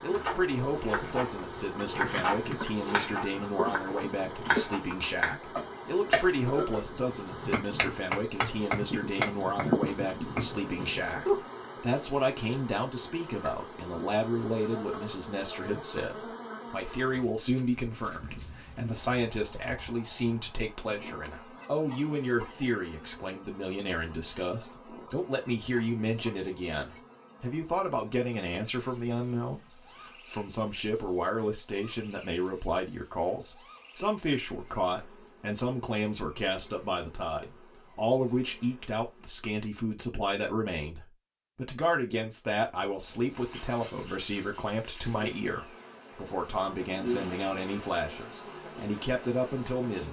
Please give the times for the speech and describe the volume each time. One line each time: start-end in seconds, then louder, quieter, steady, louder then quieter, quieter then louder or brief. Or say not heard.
0.0-50.0 steady.